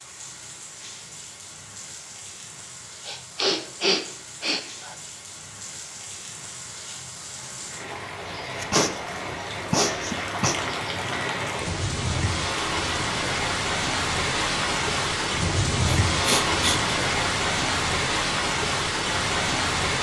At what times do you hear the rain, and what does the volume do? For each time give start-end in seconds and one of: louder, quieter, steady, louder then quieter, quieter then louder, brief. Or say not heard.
0.0-19.9 louder.